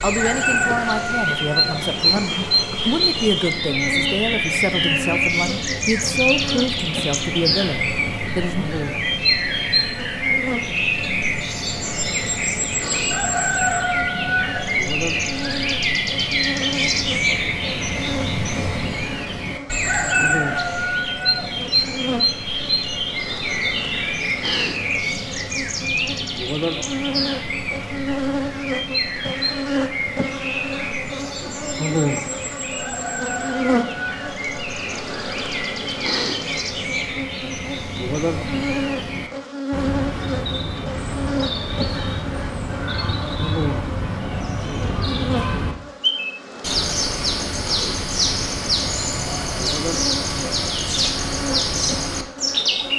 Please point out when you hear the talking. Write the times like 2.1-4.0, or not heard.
0.0-8.7.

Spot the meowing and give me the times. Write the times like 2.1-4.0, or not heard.
not heard.